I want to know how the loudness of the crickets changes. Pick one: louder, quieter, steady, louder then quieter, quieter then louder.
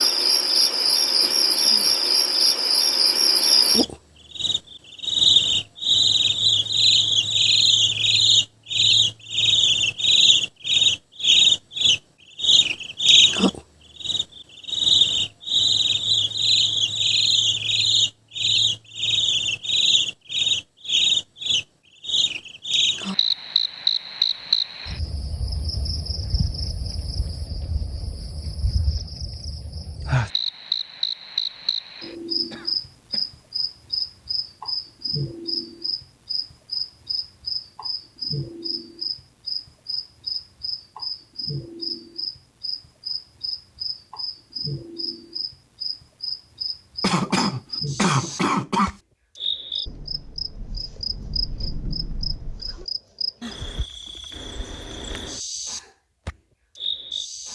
quieter.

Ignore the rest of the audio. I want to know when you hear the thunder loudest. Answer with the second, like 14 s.
52 s.